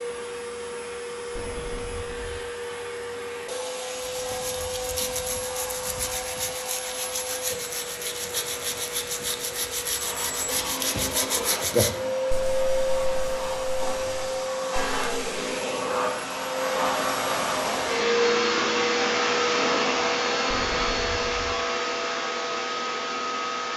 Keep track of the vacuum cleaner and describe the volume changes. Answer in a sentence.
The volume of the vacuum cleaner goes up.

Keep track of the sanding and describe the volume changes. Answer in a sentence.
The loudness of the sanding goes up, then down.